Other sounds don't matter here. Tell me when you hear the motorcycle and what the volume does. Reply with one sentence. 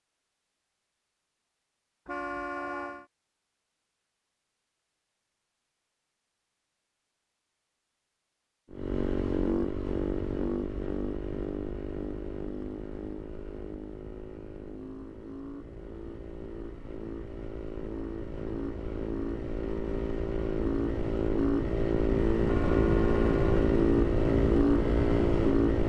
You can hear the motorcycle from 8.7 to 25.8 s, getting quieter then louder.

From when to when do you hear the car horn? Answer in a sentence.
The car horn can be heard from 2.0 to 3.0 s and from 22.4 to 23.6 s.